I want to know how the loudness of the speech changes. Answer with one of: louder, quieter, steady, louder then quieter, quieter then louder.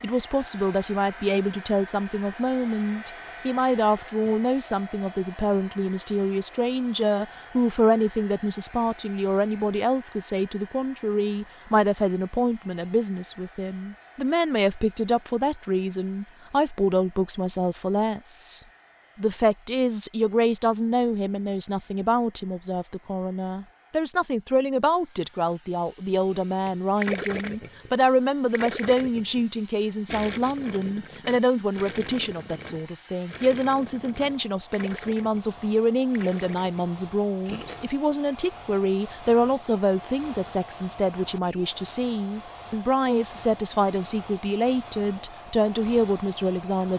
steady.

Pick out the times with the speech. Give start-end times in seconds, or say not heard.
0.0-46.9.